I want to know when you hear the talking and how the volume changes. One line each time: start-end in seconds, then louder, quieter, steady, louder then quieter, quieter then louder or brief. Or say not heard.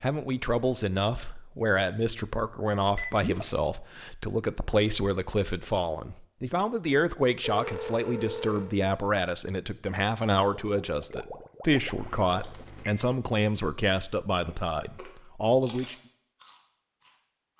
0.0-15.9 steady.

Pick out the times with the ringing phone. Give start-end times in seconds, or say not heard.
2.8-3.2, 7.4-8.8, 11.9-12.9.